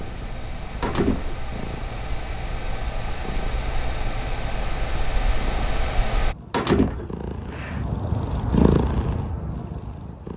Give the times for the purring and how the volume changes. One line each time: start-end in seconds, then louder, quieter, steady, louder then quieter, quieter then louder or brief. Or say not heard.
0.0-10.3 louder.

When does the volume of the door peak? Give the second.
7 s.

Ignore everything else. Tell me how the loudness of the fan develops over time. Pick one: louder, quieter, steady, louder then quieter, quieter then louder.
louder.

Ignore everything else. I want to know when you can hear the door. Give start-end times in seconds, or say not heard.
0.8-1.4, 6.5-7.1.